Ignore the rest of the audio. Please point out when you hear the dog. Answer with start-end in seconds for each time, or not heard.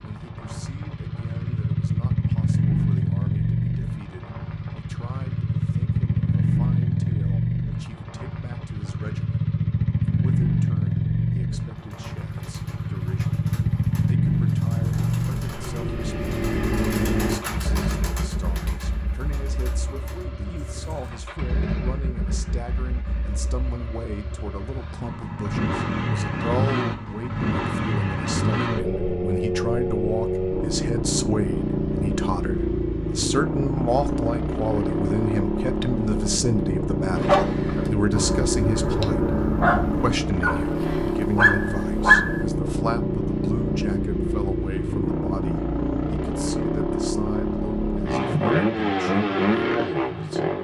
37.1-42.5.